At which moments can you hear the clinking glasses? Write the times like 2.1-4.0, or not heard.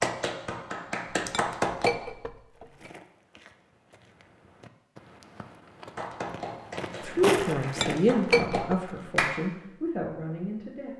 1.3-2.9, 7.8-8.8.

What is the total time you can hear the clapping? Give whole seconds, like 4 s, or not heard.
5 s.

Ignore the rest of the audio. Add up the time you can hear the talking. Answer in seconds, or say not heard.
4 s.